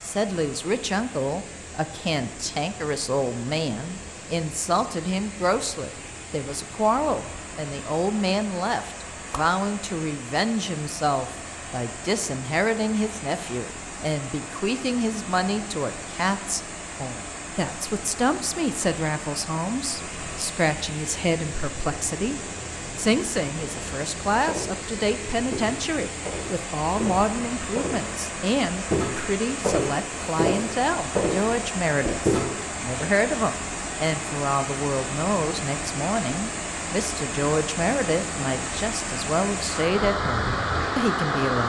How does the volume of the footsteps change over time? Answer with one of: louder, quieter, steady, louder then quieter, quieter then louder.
louder.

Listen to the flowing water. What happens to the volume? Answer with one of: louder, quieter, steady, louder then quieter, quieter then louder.
louder.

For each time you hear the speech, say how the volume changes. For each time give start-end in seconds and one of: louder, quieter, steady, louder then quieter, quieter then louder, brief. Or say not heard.
0.0-41.6 steady.